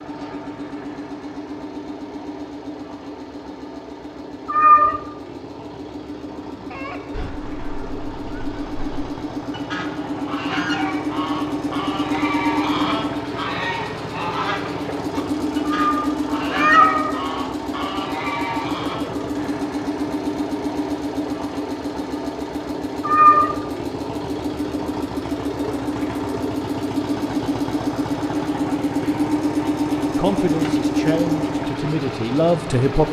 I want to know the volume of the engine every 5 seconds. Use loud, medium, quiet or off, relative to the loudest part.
medium, medium, loud, loud, loud, loud, loud.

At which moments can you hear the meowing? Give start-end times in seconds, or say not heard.
4.5-5.0, 15.7-17.2, 23.1-23.6.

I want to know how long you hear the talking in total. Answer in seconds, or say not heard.
3 s.